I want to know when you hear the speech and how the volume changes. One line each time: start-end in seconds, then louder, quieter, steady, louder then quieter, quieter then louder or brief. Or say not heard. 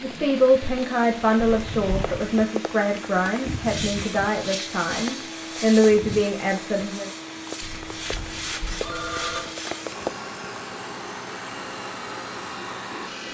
0.0-7.1 quieter then louder.